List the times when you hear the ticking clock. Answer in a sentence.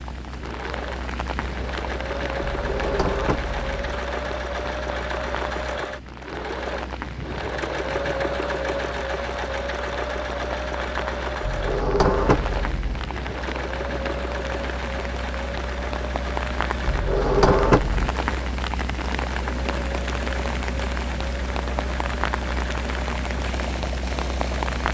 You can't hear the ticking clock here.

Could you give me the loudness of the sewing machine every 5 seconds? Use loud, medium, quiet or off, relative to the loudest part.
loud, loud, loud, medium, medium.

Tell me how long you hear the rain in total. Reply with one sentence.
You can hear the rain for 25 seconds altogether.